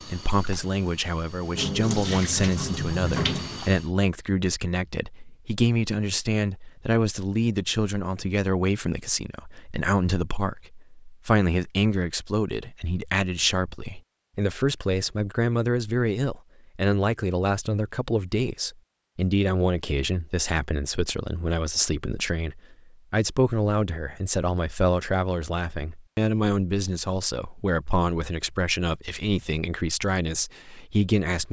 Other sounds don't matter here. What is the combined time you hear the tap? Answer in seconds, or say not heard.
4 s.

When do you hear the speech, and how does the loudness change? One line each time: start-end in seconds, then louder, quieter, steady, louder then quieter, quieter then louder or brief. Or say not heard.
0.1-31.4 steady.